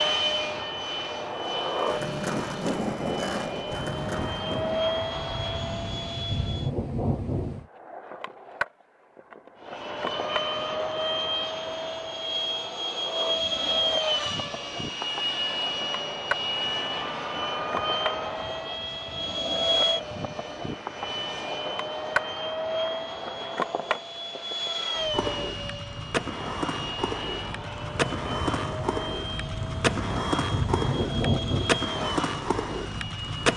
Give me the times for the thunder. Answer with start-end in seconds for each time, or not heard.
3.7-7.7, 27.9-31.9.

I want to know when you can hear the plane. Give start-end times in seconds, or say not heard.
0.0-6.7, 9.6-33.5.